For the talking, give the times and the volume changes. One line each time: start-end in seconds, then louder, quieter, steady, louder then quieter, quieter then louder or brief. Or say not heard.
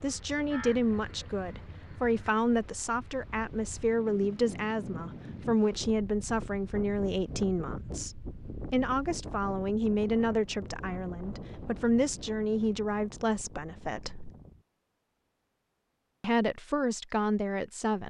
0.0-14.3 steady
16.2-18.0 brief.